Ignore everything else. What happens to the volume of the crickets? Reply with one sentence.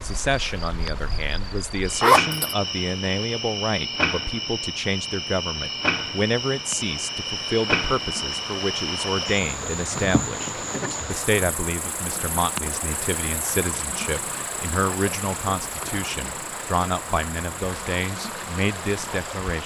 The loudness of the crickets goes down.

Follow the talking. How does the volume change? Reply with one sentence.
The volume of the talking stays about the same.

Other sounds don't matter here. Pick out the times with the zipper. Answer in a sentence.
The zipper can be heard from 2.0 to 2.5 s.